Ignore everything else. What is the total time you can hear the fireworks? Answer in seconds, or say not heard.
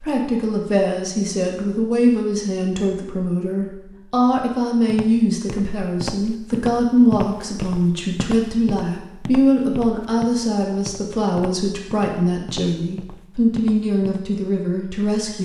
not heard.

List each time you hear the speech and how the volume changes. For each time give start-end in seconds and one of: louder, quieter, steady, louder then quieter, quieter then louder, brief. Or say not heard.
0.0-15.4 steady.